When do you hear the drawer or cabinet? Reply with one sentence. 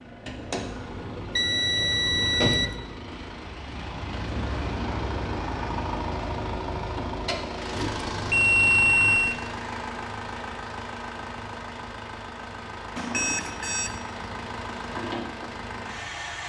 You can't hear the drawer or cabinet here.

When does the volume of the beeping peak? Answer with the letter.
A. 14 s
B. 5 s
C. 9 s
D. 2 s
C.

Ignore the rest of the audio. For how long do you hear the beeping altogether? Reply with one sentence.
You can hear the beeping for 4 seconds altogether.